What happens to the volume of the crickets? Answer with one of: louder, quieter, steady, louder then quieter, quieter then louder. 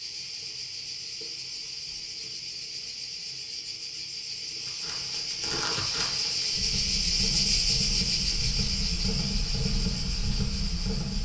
louder then quieter.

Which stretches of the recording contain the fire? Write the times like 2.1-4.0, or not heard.
4.6-11.2.